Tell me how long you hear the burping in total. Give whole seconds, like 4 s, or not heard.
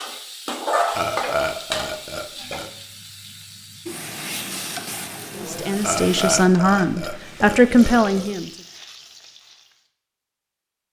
4 s.